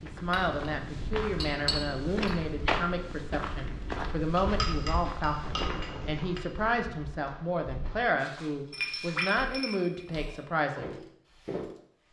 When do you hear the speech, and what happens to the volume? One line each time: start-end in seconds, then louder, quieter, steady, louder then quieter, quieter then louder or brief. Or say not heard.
0.0-10.9 steady.